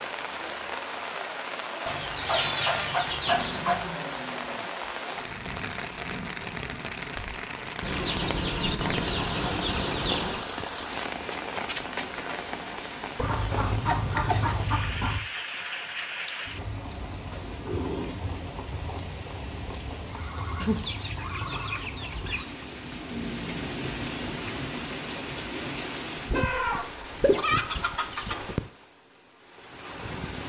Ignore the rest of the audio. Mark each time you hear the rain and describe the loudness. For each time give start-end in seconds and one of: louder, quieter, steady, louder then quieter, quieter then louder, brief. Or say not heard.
0.0-30.4 steady.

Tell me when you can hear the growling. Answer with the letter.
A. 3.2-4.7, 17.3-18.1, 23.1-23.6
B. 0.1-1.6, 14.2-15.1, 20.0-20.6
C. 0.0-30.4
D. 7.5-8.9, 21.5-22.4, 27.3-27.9
A.